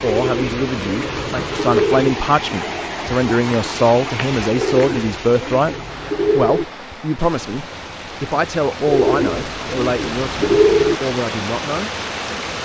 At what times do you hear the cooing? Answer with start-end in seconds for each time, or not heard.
0.0-2.1, 4.5-6.7, 8.8-11.0.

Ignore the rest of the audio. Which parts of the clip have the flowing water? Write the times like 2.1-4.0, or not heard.
0.0-12.5.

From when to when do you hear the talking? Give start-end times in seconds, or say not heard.
0.0-5.8, 6.3-11.9.